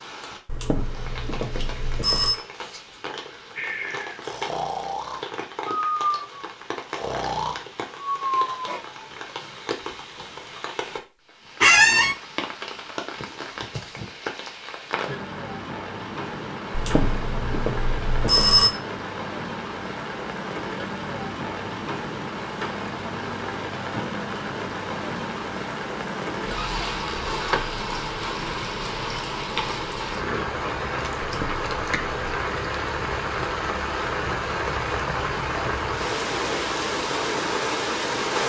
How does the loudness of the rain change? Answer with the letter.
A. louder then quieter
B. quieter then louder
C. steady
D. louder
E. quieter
D.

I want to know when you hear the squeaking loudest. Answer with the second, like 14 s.
12 s.